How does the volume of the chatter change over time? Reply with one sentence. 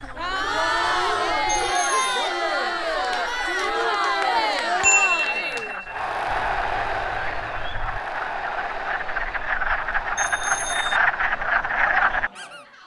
The loudness of the chatter goes down.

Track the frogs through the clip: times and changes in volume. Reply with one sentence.
You can hear the frogs from 0.0 to 12.7 s, getting louder.